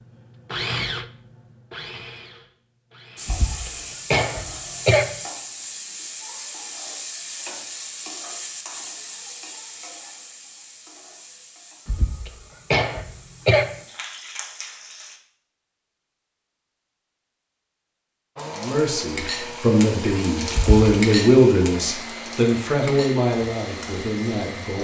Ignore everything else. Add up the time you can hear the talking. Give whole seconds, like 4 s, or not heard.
6 s.